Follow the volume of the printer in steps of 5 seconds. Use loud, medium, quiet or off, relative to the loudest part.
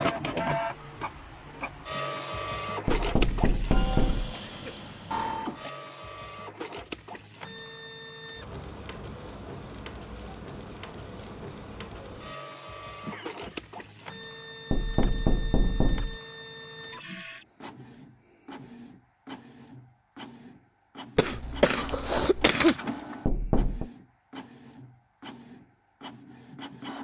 loud, medium, medium, medium, medium, medium.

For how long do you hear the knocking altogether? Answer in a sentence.
The knocking can be heard for 4 seconds in total.